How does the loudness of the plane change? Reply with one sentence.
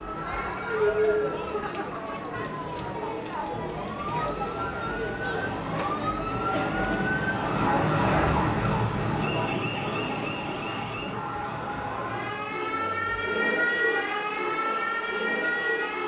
The loudness of the plane goes up, then down.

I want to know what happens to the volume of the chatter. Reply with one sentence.
The loudness of the chatter goes down.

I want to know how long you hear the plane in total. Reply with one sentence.
The plane can be heard for 8 seconds in total.